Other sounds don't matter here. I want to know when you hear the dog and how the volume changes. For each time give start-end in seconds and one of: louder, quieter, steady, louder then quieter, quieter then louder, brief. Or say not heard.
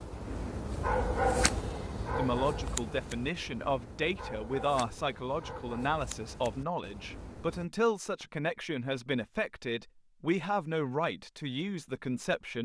0.0-7.7 quieter.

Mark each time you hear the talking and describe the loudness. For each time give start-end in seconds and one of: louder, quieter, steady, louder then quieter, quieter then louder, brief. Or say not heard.
2.1-12.6 steady.